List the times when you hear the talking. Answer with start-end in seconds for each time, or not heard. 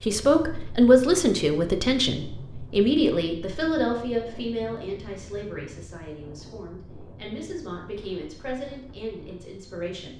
0.0-10.1.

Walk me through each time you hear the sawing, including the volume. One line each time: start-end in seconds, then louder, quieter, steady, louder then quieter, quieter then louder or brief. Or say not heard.
not heard.